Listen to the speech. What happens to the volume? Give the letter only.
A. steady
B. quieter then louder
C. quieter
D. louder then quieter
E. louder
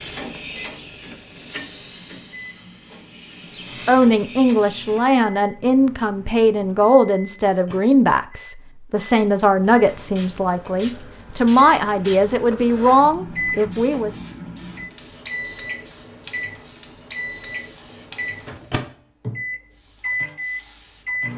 A.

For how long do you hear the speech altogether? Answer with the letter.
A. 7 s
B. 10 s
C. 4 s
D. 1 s
B.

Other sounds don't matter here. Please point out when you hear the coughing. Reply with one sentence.
You can't hear the coughing here.